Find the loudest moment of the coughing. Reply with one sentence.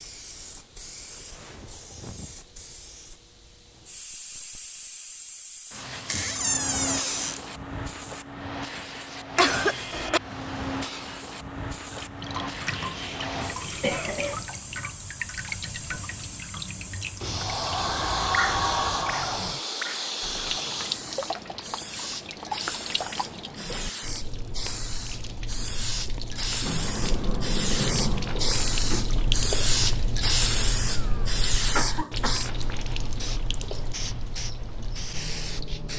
The loudest moment of the coughing is at 10 seconds.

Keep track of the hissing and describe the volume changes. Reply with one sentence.
The loudness of the hissing goes up.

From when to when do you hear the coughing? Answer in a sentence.
The coughing can be heard from 9.3 to 10.2 s, from 12.7 to 14.4 s and from 30.9 to 32.5 s.